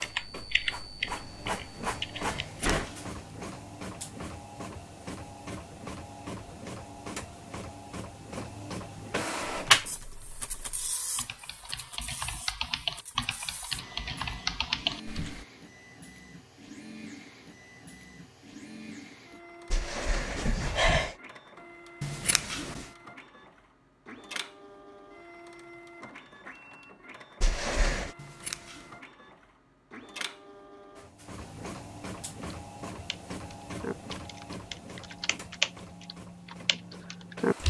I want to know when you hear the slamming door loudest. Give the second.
21 s.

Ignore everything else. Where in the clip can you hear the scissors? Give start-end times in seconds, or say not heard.
2.4-3.1, 22.0-22.9, 28.1-29.0.